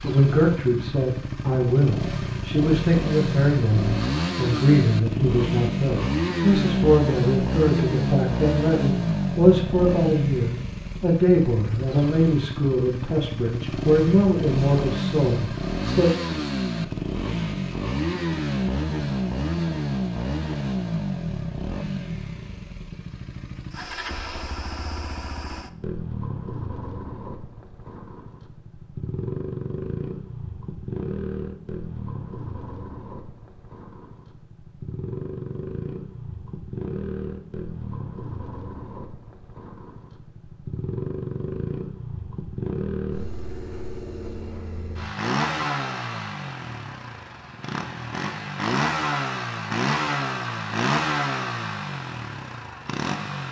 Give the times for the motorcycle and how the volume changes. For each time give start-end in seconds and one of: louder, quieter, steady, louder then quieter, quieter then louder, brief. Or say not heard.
0.0-53.4 quieter then louder.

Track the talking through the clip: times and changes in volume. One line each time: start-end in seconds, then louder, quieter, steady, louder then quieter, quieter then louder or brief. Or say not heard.
0.0-16.1 steady.